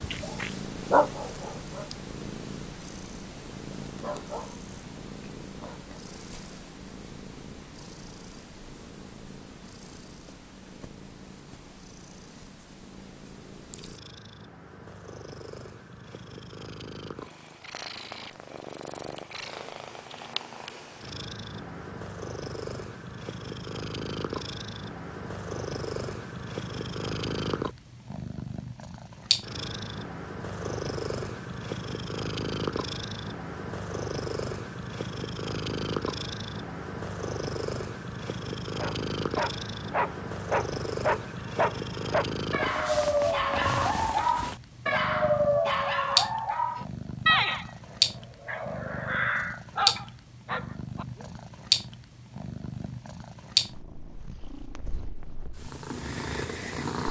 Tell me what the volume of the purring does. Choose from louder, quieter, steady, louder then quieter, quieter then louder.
louder.